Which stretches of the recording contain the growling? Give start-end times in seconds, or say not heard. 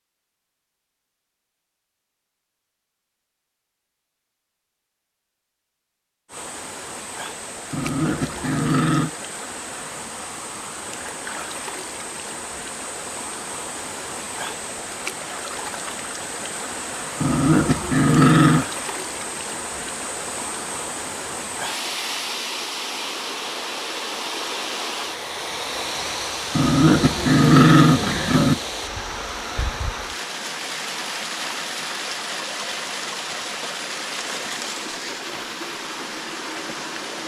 7.7-9.1, 17.2-18.6, 26.6-28.6.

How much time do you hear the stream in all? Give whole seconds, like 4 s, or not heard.
31 s.